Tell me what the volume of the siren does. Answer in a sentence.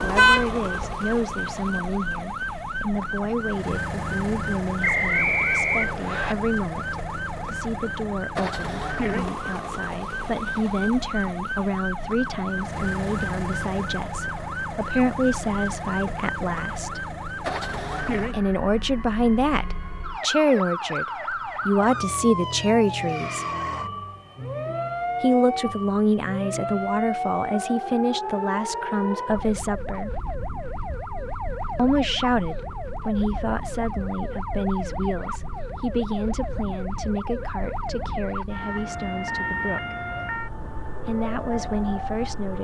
The loudness of the siren stays about the same.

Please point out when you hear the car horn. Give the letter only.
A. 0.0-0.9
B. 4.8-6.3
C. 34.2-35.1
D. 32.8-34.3
A.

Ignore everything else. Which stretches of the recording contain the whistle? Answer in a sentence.
The whistle can be heard from 4.8 to 6.3 s.